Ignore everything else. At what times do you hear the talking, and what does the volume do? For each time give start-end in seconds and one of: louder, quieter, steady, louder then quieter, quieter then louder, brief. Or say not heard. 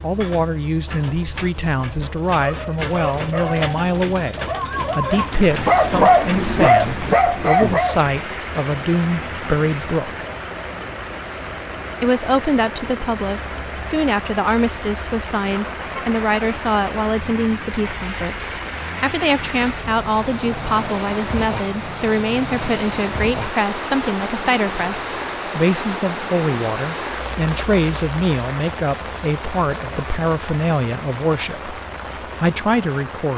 0.0-10.2 steady
12.0-31.8 steady
32.4-33.3 brief.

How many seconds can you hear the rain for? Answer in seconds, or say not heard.
28 s.